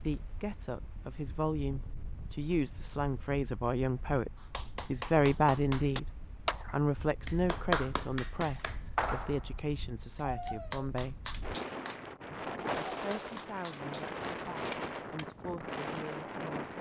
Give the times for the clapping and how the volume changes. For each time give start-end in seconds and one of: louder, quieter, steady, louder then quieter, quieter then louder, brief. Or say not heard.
4.3-15.3 quieter.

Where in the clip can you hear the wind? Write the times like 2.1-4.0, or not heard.
0.0-16.7.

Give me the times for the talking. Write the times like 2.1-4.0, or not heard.
0.0-6.0, 6.7-11.2, 12.3-16.6.